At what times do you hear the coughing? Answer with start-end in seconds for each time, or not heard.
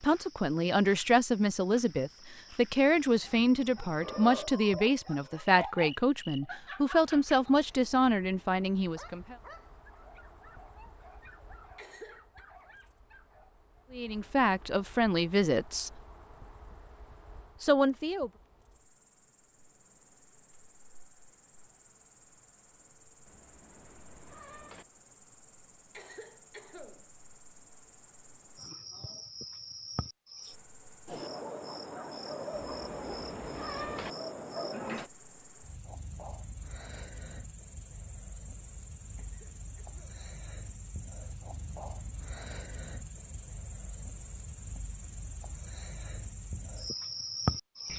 11.8-12.4, 25.9-27.1, 39.1-40.2.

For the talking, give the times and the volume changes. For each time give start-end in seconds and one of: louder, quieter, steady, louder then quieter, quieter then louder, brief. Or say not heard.
0.0-9.3 steady
13.9-15.9 brief
17.6-18.3 brief.